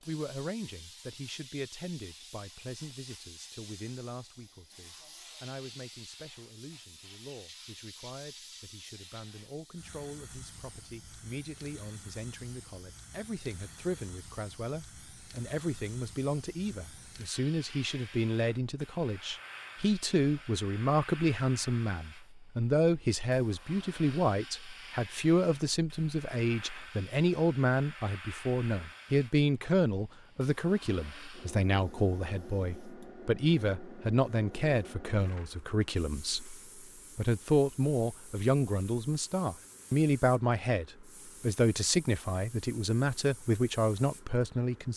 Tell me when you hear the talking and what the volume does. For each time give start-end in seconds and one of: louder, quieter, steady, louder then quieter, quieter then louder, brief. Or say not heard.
0.1-44.9 louder.